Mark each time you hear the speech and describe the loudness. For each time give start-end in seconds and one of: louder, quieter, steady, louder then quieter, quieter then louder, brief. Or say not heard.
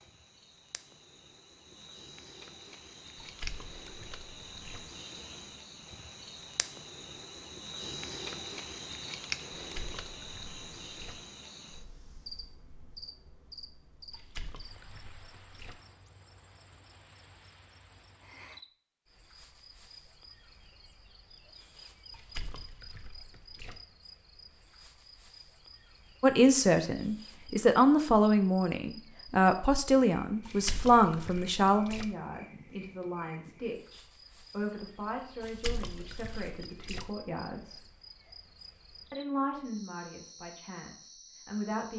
26.2-37.9 quieter
39.1-41.9 brief.